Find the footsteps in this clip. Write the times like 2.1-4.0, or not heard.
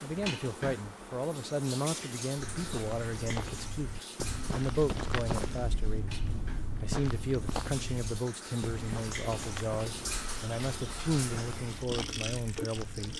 2.5-13.1.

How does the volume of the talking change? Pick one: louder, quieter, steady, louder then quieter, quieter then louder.
steady.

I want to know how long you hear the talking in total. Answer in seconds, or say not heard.
13 s.